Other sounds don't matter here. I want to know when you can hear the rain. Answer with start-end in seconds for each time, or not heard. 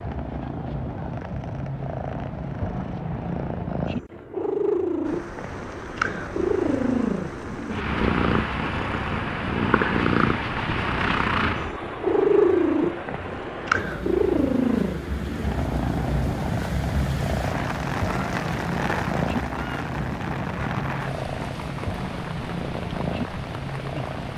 5.0-24.3.